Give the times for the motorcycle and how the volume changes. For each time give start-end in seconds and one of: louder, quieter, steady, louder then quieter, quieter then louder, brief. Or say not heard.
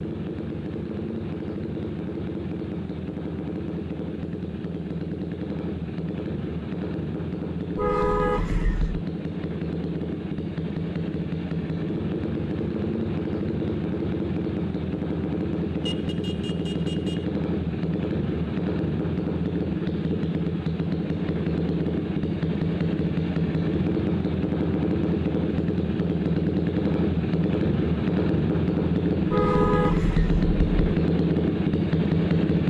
0.0-32.6 louder.